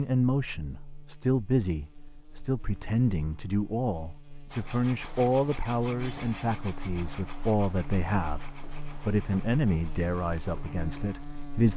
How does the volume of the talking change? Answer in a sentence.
The loudness of the talking stays about the same.